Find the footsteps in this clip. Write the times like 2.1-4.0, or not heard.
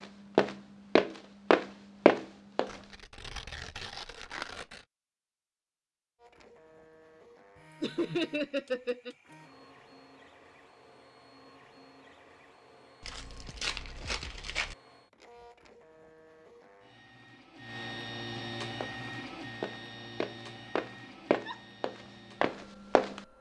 0.0-2.8, 18.8-23.2.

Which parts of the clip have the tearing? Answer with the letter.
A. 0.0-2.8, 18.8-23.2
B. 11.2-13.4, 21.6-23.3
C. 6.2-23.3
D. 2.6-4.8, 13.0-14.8
D.